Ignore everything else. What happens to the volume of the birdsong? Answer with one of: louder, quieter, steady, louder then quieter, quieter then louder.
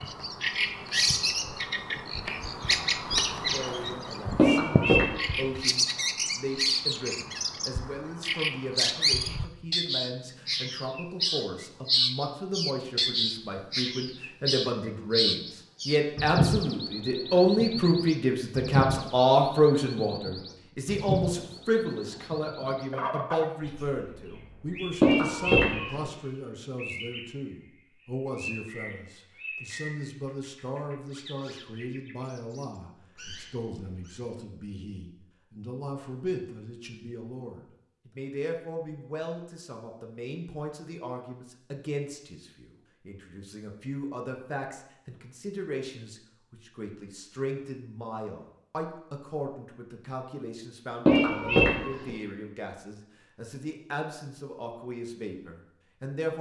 quieter.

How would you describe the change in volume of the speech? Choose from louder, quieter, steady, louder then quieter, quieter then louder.
louder then quieter.